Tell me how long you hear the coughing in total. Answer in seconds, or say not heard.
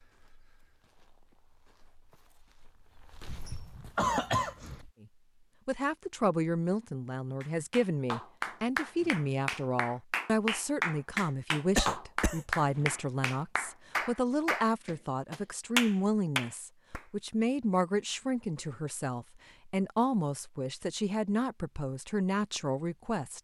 2 s.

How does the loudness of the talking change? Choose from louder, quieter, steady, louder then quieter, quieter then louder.
steady.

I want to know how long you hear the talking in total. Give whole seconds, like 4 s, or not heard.
18 s.